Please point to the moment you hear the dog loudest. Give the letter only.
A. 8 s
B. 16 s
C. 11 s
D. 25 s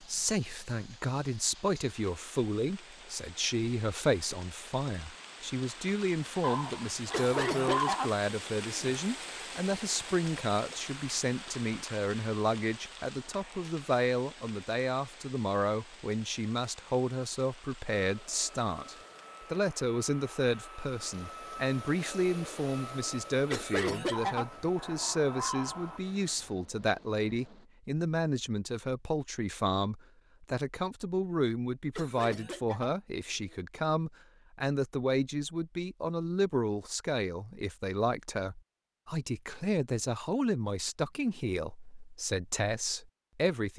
A.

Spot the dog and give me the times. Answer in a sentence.
You can hear the dog from 6.4 to 8.1 s and from 24.1 to 26.0 s.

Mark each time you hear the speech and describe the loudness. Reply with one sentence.
You can hear the speech from 0.0 to 43.7 s, at a steady volume.